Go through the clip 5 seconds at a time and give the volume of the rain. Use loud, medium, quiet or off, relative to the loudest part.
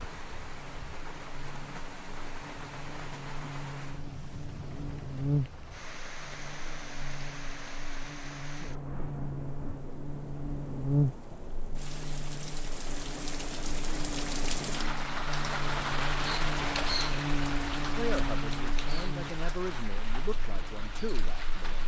medium, medium, medium, loud, medium.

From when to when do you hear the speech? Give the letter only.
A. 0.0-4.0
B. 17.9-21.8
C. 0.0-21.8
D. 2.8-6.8
B.